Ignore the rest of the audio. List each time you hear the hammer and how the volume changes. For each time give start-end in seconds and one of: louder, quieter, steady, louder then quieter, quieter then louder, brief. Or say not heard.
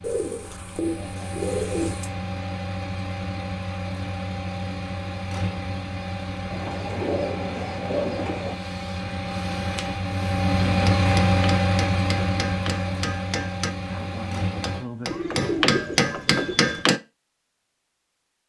10.6-17.0 louder.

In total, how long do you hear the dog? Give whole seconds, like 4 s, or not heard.
not heard.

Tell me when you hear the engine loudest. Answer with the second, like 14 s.
11 s.